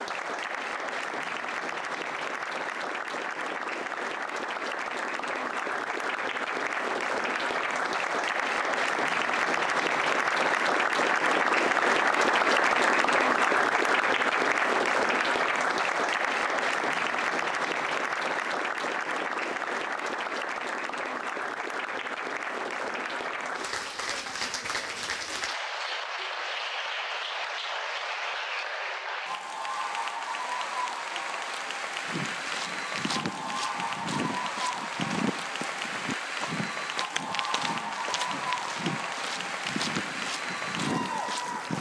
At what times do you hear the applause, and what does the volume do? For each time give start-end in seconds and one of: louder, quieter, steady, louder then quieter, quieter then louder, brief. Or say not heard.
0.0-41.7 louder then quieter.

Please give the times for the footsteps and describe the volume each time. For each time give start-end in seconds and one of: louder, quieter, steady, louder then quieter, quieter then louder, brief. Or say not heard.
32.0-41.7 steady.